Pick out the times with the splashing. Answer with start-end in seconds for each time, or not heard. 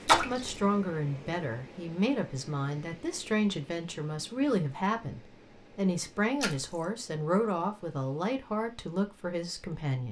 0.1-0.6, 6.4-6.8.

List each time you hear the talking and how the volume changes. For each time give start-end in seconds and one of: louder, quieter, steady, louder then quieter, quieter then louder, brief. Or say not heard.
0.1-10.0 steady.